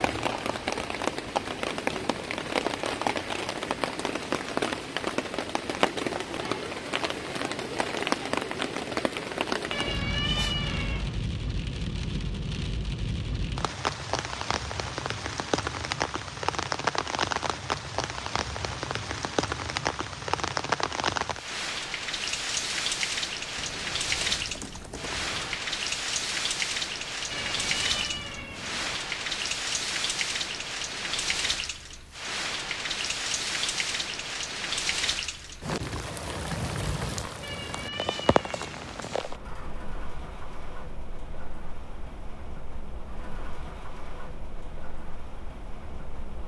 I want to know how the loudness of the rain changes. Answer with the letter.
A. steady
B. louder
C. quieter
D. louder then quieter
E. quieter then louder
C.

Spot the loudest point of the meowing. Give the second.
10 s.